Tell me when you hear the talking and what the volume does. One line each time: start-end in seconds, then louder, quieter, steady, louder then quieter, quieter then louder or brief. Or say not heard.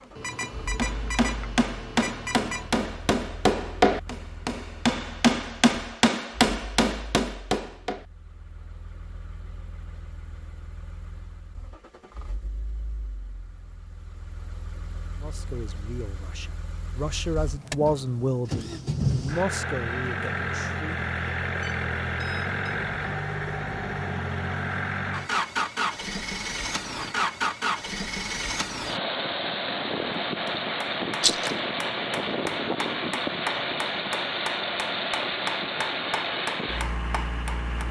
15.2-20.9 louder then quieter.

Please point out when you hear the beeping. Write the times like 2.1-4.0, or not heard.
0.1-2.8, 21.6-22.6.